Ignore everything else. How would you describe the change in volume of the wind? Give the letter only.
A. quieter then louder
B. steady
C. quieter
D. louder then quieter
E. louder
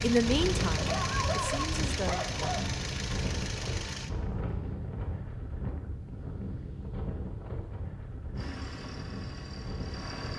C.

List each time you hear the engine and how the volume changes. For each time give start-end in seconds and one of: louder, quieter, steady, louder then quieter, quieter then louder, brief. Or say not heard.
0.0-4.1 steady
8.3-10.3 brief.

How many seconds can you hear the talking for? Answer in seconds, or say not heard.
2 s.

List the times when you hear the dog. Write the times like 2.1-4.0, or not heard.
0.8-2.8.